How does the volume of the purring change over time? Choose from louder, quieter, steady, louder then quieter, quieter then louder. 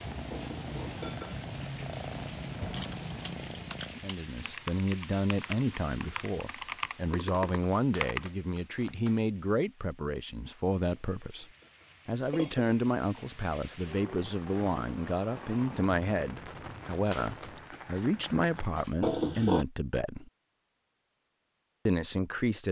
steady.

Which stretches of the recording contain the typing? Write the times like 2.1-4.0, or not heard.
2.7-8.3.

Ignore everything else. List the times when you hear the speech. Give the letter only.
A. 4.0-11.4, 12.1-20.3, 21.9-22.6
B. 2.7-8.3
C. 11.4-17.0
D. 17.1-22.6
A.